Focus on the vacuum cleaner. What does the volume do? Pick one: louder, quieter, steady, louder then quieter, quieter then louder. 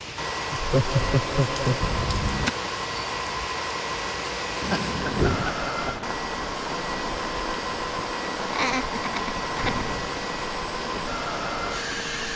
steady.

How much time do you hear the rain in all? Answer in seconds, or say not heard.
12 s.